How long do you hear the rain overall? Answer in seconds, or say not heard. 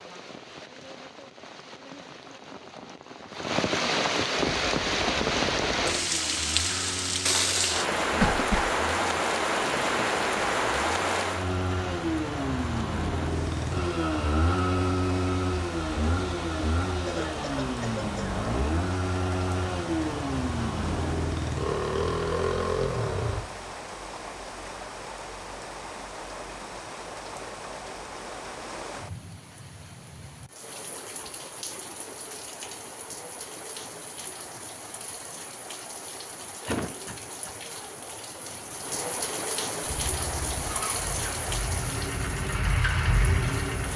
44 s.